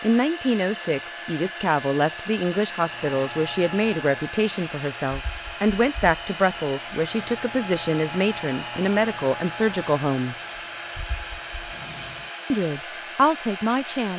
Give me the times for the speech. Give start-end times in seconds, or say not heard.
0.0-10.3, 12.5-14.1.